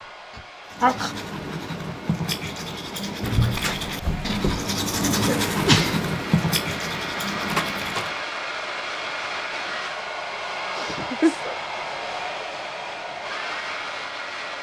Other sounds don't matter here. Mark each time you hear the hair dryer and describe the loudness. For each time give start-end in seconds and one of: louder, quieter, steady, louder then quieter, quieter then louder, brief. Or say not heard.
0.0-14.5 louder.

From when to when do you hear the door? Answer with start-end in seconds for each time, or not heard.
3.2-4.7, 7.5-8.2.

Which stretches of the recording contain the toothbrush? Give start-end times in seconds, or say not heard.
0.7-8.2.